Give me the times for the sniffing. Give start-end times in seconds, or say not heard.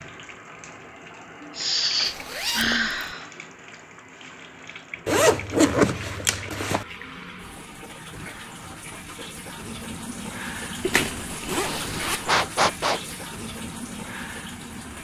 1.1-3.3, 11.7-13.2.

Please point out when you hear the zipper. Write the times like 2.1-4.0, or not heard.
2.0-3.1, 5.0-6.8, 10.8-12.3.